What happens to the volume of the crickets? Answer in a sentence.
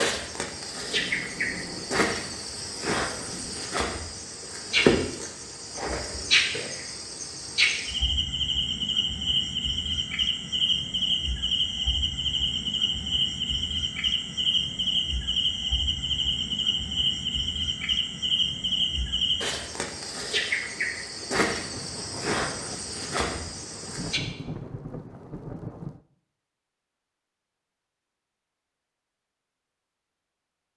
The volume of the crickets stays about the same.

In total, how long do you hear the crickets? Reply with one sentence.
You can hear the crickets for 24 seconds altogether.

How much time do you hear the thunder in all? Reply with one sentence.
The thunder can be heard for 7 seconds in total.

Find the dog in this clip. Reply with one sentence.
You can't hear the dog here.